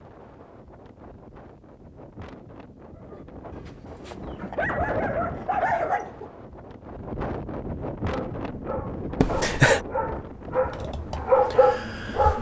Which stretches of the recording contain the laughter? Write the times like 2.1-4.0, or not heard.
9.2-9.8.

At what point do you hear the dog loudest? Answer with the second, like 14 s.
11 s.